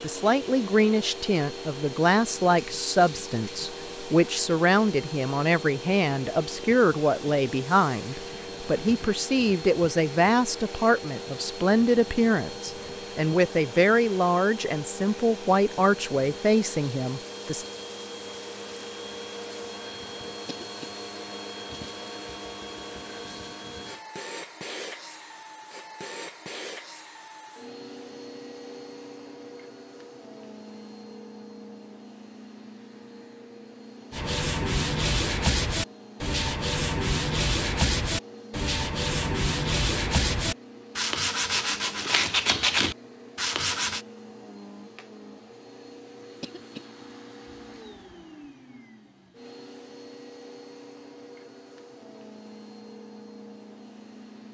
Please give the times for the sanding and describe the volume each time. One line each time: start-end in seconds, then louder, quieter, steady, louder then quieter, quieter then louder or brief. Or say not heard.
34.1-44.0 steady.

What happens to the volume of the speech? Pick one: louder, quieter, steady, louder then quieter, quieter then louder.
steady.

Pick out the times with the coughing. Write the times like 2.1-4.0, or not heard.
20.4-20.9, 46.4-46.9.